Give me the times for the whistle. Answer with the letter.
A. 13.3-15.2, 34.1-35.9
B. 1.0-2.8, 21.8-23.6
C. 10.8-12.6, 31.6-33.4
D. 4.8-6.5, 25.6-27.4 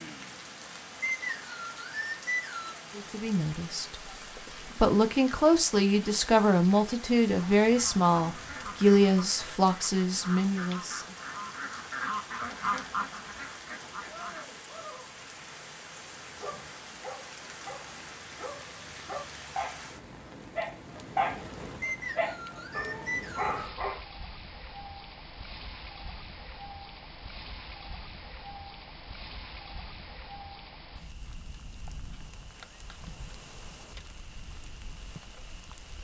B.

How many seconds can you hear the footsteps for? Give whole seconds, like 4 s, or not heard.
not heard.